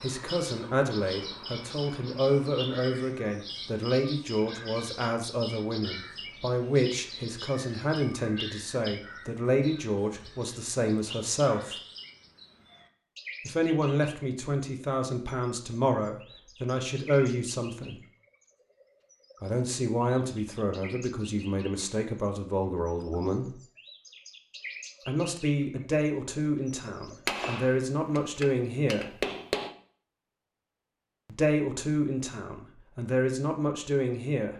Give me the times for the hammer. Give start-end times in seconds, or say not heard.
27.2-29.7.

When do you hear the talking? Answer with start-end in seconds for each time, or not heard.
0.0-11.8, 13.4-18.0, 19.4-23.6, 25.1-29.2, 31.3-34.5.